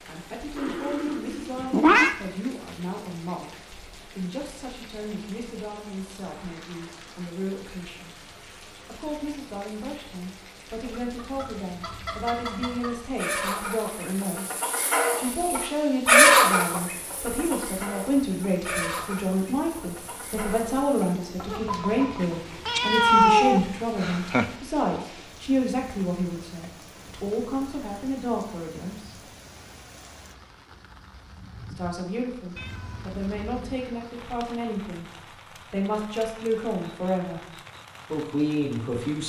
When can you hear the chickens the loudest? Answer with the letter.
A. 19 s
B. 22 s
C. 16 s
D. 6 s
C.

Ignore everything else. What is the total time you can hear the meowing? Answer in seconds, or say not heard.
5 s.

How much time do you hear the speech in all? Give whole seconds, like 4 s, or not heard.
34 s.